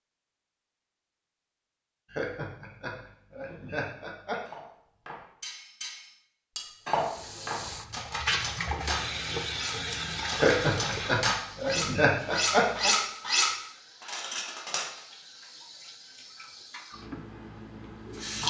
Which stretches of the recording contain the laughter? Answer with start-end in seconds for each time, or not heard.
2.1-4.4, 10.3-12.9.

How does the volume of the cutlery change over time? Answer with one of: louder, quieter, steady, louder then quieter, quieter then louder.
louder.